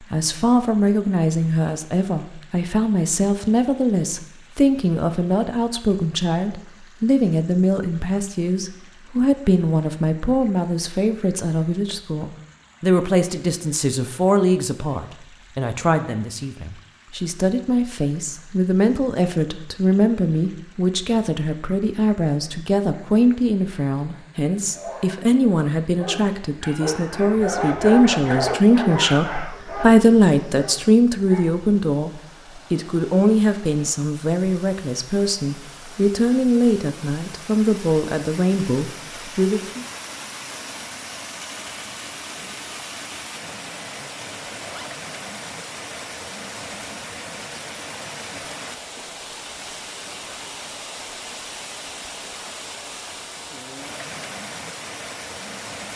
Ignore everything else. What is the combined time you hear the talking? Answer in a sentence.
The talking can be heard for 40 seconds in total.